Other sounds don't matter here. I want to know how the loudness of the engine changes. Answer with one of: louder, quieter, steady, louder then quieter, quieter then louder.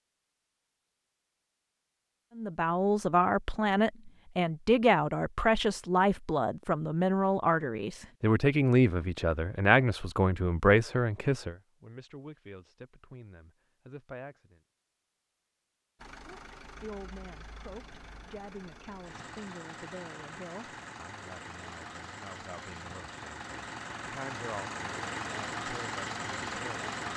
louder.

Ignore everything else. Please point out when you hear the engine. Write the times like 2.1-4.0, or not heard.
15.9-27.1.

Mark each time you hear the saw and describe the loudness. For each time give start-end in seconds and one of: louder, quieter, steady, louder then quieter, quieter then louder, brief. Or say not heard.
not heard.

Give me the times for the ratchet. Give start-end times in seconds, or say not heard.
not heard.